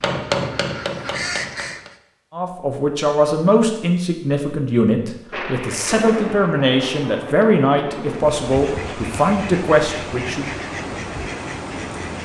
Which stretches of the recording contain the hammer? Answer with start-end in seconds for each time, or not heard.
0.0-1.9.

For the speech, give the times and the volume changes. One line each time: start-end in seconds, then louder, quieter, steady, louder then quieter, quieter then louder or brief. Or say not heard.
2.3-10.4 steady.